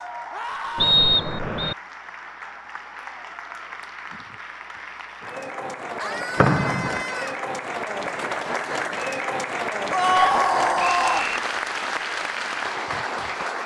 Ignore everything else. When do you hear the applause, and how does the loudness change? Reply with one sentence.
You can hear the applause from 0.0 to 13.6 s, getting louder.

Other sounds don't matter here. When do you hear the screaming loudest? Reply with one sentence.
The loudest moment of the screaming is at 10 seconds.